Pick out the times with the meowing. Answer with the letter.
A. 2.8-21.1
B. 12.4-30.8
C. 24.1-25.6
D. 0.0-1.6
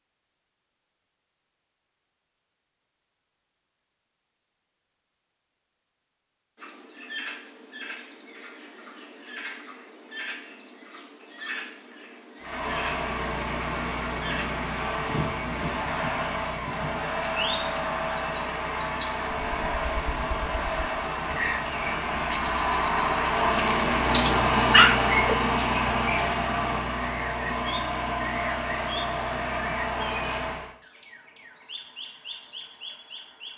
C.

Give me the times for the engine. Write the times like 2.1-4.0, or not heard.
12.4-30.8.